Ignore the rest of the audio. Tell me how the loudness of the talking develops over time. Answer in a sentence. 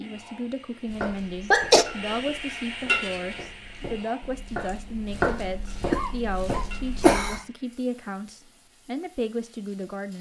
The volume of the talking stays about the same.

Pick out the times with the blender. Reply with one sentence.
The blender can't be heard in this clip.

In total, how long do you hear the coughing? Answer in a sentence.
You can hear the coughing for 2 seconds altogether.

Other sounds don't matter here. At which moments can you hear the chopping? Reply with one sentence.
The chopping can be heard from 0.8 to 7.4 s.